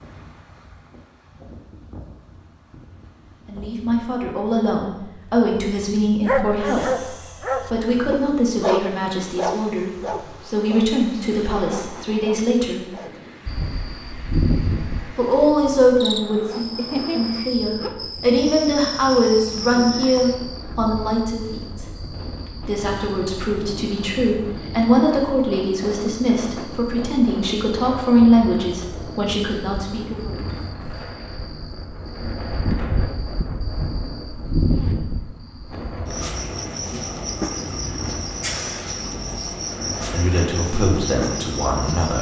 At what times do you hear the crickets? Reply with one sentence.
The crickets can be heard from 13.4 to 42.1 s.